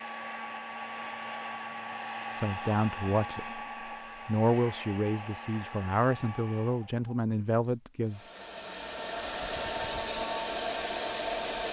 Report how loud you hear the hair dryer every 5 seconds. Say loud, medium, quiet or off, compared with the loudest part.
medium, medium, loud.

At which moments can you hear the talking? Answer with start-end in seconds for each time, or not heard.
2.4-3.6, 4.2-8.3.